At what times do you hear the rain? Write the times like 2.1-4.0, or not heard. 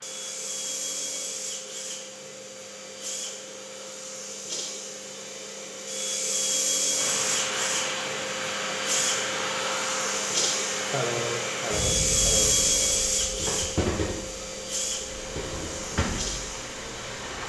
0.0-17.4.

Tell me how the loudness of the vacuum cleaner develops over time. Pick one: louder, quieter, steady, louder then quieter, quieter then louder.
louder then quieter.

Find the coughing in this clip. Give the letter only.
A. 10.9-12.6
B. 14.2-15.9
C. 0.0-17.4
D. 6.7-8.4
A.